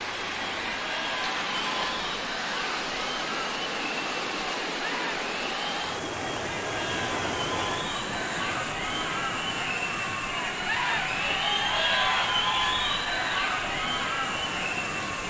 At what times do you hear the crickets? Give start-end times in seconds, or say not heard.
not heard.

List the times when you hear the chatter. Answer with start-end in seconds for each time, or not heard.
0.0-15.2.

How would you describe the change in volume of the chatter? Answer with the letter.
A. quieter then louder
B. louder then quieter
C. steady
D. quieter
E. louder
E.